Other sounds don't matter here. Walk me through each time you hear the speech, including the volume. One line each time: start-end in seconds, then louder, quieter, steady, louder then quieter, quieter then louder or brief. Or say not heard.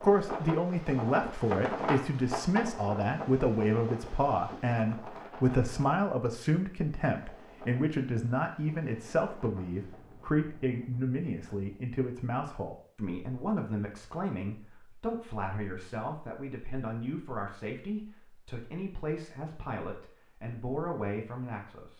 0.0-21.9 quieter.